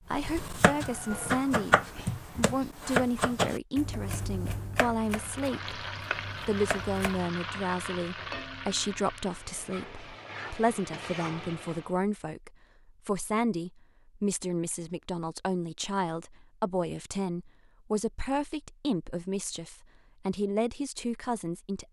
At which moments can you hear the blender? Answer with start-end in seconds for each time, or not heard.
not heard.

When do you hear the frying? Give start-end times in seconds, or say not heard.
5.0-11.9.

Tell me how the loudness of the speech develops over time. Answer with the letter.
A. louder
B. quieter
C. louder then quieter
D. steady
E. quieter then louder
D.